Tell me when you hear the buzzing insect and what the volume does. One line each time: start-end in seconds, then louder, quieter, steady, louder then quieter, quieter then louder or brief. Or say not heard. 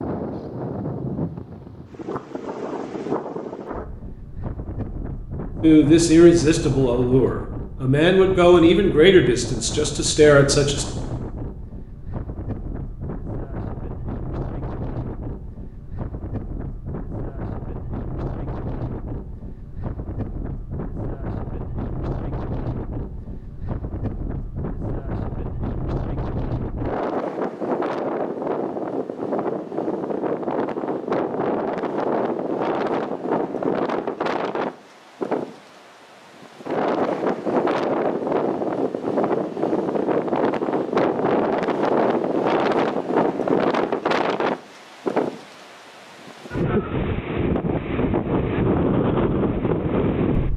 not heard.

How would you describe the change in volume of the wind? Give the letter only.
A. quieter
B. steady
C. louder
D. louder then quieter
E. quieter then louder
C.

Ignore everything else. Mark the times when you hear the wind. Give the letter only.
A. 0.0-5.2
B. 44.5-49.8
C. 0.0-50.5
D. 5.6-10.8
C.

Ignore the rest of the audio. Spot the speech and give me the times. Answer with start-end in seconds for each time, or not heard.
5.6-10.8.